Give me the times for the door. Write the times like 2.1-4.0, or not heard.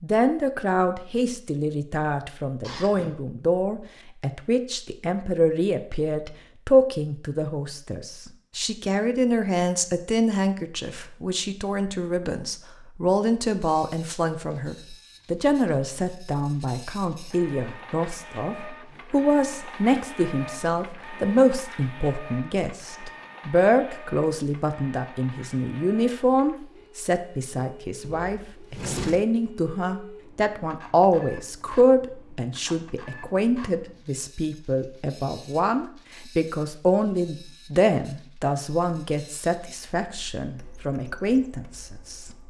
2.6-3.2, 28.0-29.2.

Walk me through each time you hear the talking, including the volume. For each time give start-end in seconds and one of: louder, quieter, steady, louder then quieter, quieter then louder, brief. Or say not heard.
0.0-42.2 steady.